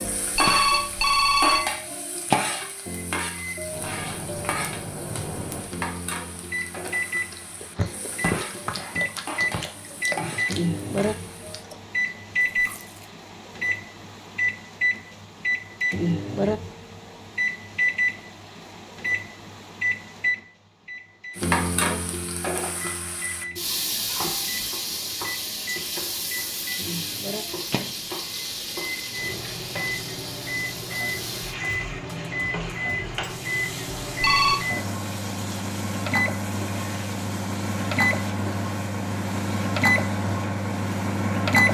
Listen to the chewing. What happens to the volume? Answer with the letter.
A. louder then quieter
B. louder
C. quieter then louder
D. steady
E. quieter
E.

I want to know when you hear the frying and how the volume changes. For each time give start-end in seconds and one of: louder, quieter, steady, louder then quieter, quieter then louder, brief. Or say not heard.
0.0-11.7 quieter
21.4-41.7 quieter.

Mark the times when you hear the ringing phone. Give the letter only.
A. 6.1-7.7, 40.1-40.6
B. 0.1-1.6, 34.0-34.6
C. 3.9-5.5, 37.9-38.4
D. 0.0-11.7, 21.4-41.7
B.